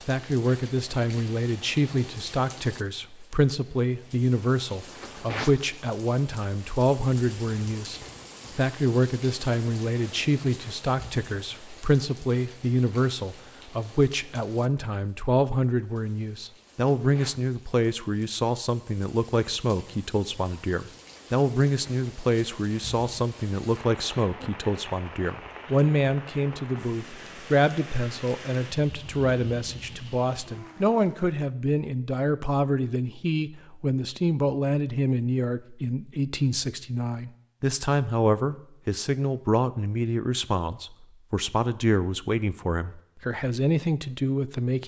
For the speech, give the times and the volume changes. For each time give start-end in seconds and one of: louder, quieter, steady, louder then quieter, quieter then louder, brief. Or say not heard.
0.1-44.8 steady.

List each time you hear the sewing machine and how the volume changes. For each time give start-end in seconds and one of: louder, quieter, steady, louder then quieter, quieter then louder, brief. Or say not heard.
not heard.